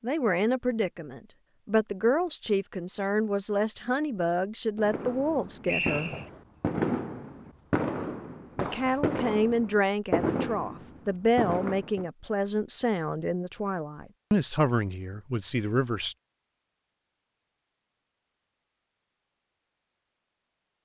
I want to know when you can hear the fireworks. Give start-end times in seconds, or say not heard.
4.8-12.1.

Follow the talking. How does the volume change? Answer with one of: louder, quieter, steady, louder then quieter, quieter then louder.
steady.